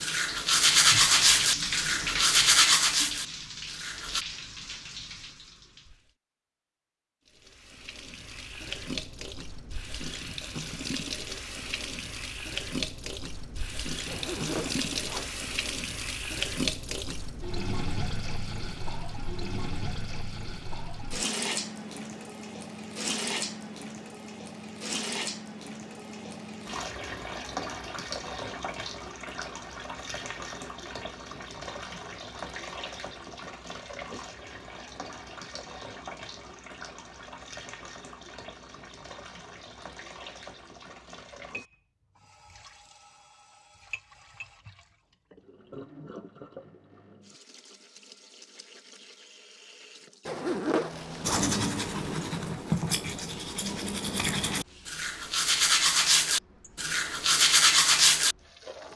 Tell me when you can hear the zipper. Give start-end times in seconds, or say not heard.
14.1-15.3, 50.2-51.5.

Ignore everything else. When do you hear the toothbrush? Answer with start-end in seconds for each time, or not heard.
0.0-4.2, 51.2-58.4.